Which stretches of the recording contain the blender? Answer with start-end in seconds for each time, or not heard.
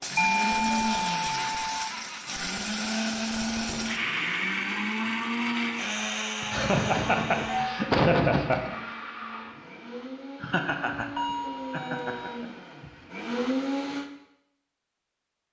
0.0-14.1.